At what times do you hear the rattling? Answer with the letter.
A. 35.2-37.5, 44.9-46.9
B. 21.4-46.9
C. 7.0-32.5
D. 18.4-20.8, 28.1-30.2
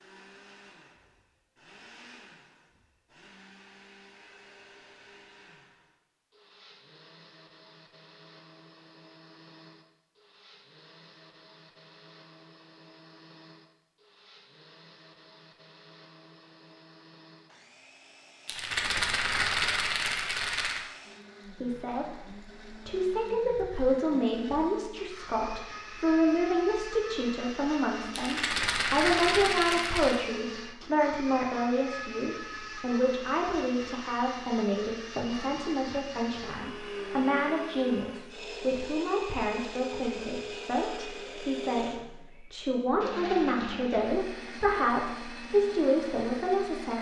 D.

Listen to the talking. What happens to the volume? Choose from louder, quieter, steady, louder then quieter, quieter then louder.
steady.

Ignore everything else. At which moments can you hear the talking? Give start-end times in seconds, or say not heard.
21.4-46.9.